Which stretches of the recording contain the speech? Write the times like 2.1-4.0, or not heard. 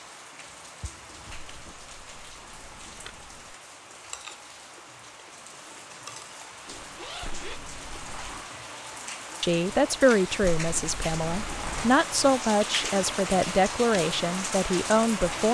9.4-15.4.